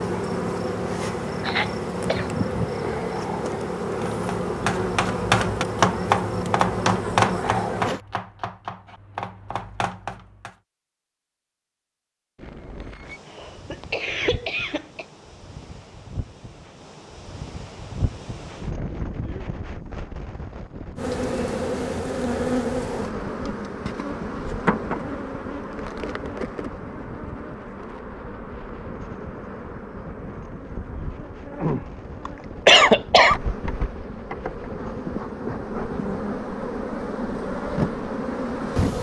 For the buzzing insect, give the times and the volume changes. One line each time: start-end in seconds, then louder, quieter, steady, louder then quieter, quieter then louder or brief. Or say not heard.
0.0-8.0 steady
20.9-38.9 quieter then louder.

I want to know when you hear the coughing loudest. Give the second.
33 s.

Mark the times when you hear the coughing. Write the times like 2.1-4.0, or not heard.
1.4-3.0, 13.3-15.1, 32.2-33.4.